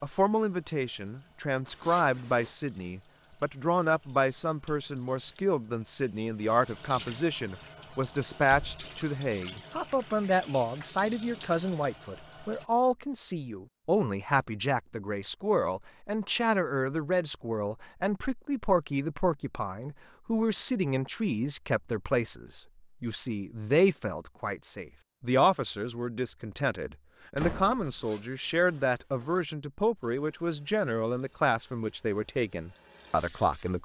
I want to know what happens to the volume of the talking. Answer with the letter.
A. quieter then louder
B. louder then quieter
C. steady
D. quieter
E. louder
C.